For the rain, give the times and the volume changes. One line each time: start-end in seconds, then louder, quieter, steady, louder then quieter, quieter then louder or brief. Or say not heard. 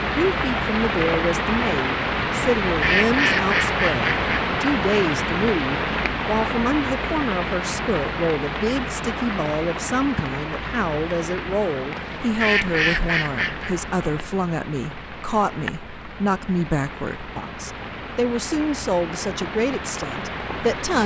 0.0-21.0 quieter.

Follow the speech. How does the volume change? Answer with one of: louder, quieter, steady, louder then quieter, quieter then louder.
steady.